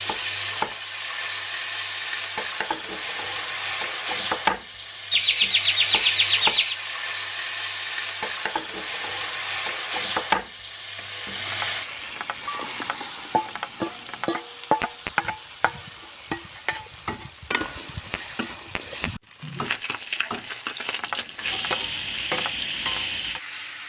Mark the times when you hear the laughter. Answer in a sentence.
The laughter can be heard from 5.1 to 6.8 s.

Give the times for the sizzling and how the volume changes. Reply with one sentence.
You can hear the sizzling from 0.0 to 23.8 s, at a steady volume.